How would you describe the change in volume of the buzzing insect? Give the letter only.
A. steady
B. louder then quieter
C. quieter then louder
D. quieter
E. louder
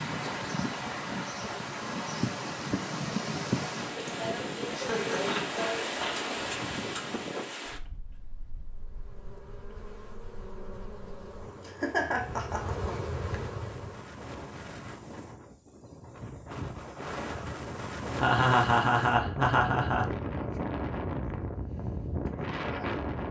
E.